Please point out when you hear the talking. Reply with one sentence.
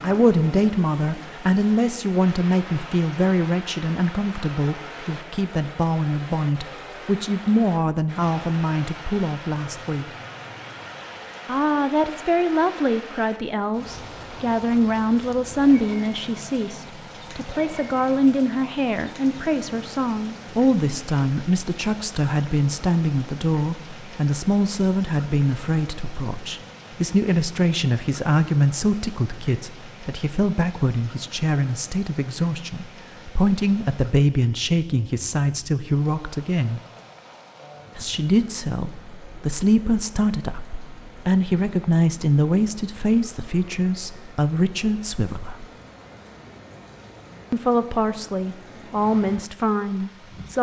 You can hear the talking from 0.0 to 10.1 s, from 11.4 to 36.8 s, from 38.0 to 45.6 s and from 47.5 to 50.5 s.